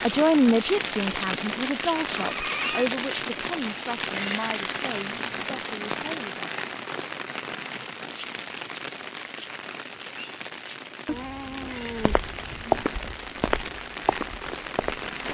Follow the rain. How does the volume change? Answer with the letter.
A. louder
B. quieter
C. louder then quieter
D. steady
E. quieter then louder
B.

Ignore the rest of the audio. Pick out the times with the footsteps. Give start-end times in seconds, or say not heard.
12.0-15.1.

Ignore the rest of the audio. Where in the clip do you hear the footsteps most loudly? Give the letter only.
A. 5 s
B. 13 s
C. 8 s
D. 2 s
B.